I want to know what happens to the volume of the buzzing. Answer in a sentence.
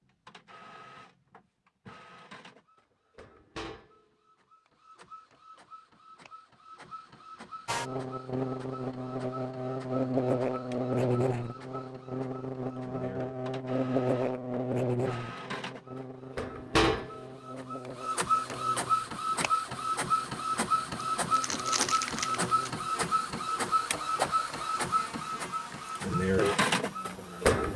The volume of the buzzing goes down.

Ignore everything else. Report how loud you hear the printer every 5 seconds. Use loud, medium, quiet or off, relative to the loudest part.
quiet, quiet, quiet, loud, loud, loud.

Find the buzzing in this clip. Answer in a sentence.
You can hear the buzzing from 7.7 to 27.6 s.